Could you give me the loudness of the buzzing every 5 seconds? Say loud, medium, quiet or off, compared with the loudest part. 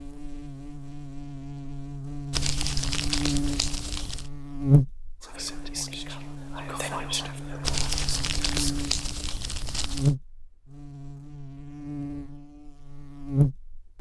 loud, medium, loud.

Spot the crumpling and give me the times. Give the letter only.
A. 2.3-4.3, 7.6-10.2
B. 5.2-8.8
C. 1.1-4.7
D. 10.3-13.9
A.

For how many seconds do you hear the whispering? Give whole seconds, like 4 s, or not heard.
4 s.